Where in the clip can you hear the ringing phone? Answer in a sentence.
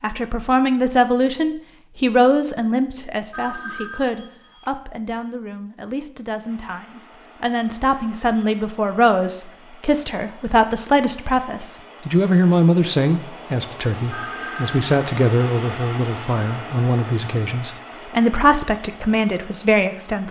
The ringing phone can be heard from 3.3 to 4.8 s and from 14.1 to 14.8 s.